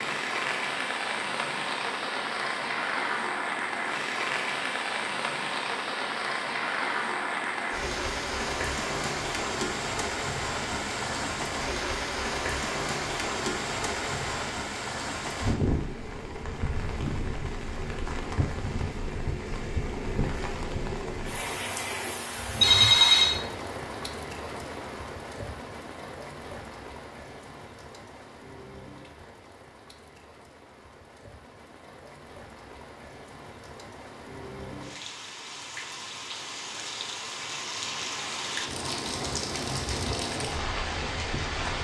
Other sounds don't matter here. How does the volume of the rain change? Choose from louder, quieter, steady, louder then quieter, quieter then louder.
quieter then louder.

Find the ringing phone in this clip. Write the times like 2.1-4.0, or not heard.
22.6-23.4.